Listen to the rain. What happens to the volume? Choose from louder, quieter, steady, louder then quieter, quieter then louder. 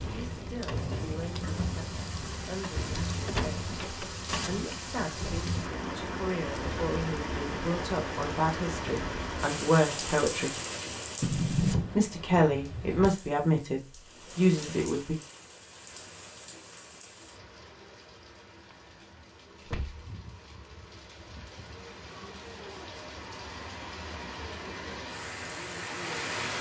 quieter then louder.